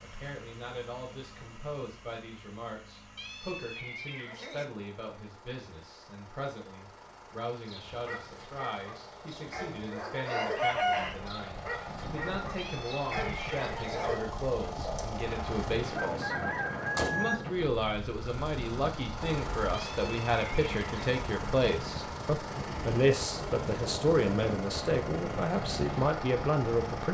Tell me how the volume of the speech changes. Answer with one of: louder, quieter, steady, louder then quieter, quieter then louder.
louder.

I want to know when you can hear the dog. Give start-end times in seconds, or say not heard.
7.7-15.1.